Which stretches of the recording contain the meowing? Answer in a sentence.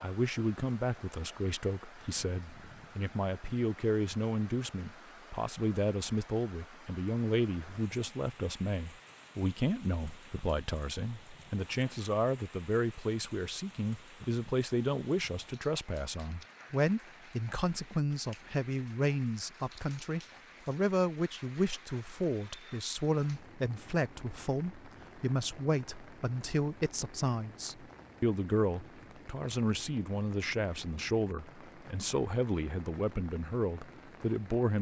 You can't hear the meowing here.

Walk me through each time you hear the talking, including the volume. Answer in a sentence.
You can hear the talking from 0.0 to 34.7 s, at a steady volume.